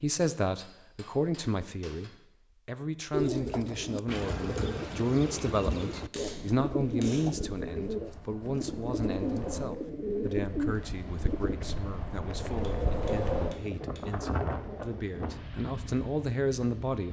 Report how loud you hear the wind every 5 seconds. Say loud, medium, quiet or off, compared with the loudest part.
off, medium, loud, medium.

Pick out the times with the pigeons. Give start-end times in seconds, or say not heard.
3.1-11.6.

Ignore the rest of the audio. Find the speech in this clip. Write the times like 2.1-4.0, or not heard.
0.0-17.0.